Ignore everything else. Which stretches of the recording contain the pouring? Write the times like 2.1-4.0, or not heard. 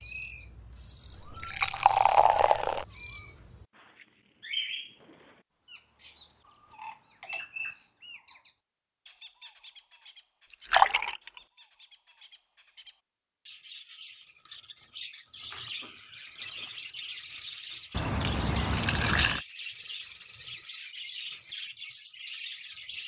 1.1-2.9, 10.5-11.4, 17.9-19.4.